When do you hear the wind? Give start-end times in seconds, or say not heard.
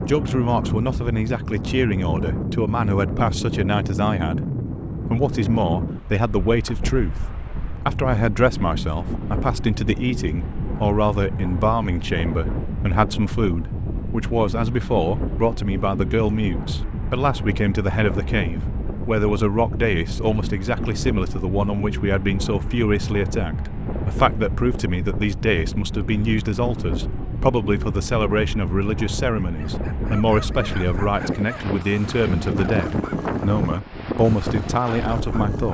0.0-35.6.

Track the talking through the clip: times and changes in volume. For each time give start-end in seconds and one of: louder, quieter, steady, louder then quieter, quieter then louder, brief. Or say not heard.
0.1-7.2 steady
7.8-35.6 steady.